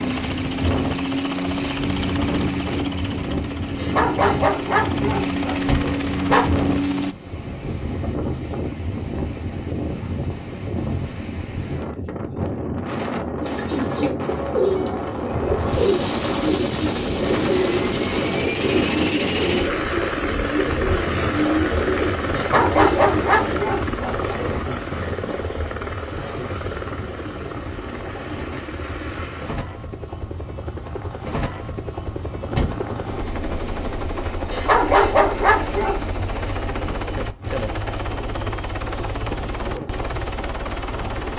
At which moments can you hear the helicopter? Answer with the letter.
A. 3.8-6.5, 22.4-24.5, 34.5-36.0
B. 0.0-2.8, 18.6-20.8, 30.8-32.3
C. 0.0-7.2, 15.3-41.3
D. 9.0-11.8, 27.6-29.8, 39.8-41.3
C.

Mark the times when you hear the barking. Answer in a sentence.
The barking can be heard from 3.8 to 6.5 s, from 22.4 to 24.5 s and from 34.5 to 36.0 s.